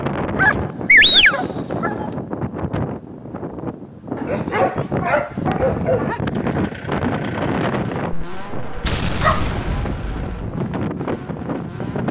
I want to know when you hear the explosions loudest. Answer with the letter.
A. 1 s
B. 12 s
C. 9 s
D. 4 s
C.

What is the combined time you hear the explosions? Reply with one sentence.
You can hear the explosions for 2 seconds altogether.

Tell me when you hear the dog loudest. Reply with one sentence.
The volume of the dog peaks at 1 second.